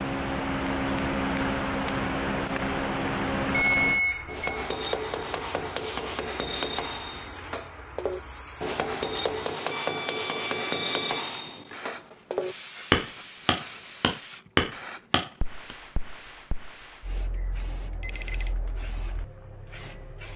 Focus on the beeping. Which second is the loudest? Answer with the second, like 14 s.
4 s.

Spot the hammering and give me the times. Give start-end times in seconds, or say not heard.
4.2-15.8.